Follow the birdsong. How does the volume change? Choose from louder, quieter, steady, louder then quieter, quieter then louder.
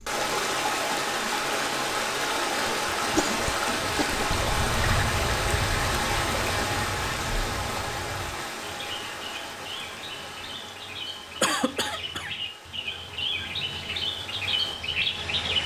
quieter then louder.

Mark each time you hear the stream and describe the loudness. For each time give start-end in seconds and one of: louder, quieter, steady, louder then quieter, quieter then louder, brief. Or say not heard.
0.0-15.6 quieter.